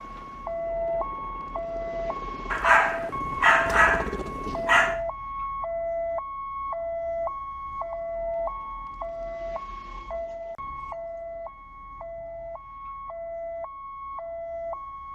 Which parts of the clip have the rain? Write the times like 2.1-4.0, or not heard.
not heard.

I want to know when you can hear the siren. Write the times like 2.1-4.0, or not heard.
0.0-15.1.